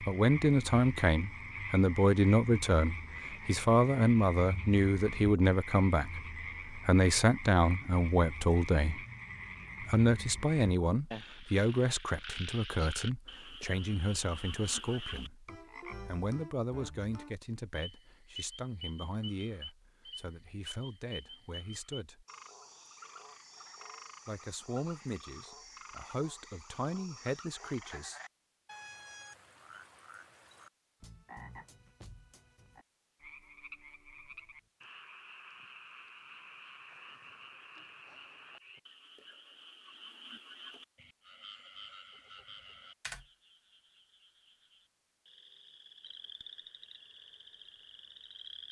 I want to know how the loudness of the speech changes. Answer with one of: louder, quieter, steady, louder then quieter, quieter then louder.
quieter.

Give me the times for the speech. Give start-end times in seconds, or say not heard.
0.0-9.1, 9.8-22.2, 24.2-28.2.